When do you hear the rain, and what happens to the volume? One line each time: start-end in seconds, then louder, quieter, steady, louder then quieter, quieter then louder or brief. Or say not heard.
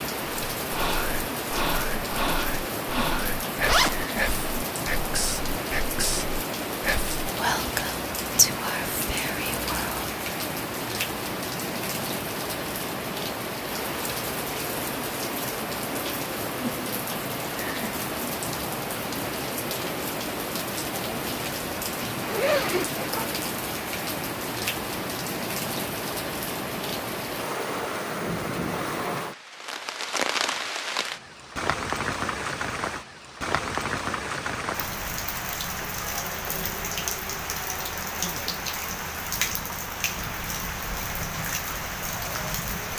0.0-42.9 steady.